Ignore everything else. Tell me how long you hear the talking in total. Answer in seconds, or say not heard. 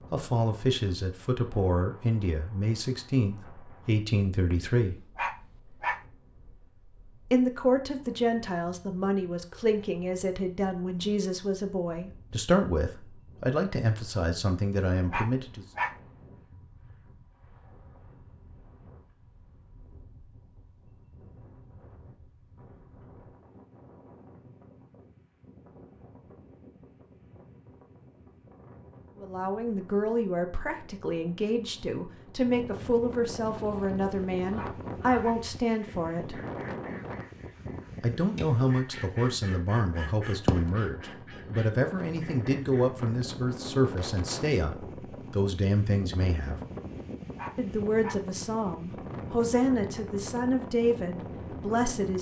34 s.